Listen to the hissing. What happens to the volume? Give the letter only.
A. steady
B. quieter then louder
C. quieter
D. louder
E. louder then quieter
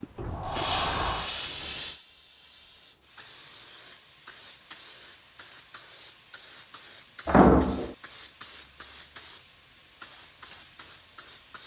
C.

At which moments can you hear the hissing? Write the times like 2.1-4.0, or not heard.
0.0-11.6.